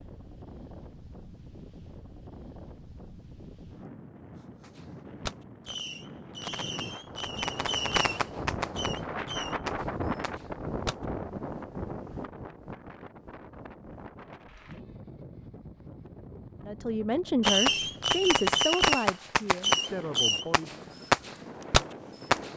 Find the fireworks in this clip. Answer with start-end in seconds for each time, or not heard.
4.6-10.9, 17.4-22.5.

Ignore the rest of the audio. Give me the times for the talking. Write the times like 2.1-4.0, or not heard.
16.6-20.8.